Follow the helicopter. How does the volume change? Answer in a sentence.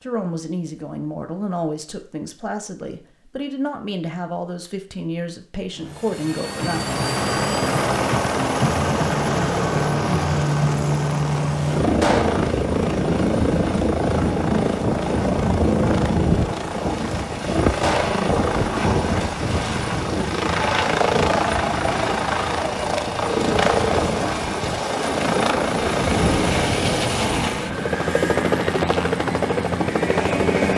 The volume of the helicopter stays about the same.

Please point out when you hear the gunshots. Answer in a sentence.
You can hear the gunshots from 12.0 to 12.4 s and from 17.8 to 18.2 s.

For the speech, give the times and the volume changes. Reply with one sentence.
The speech can be heard from 0.0 to 7.0 s, at a steady volume.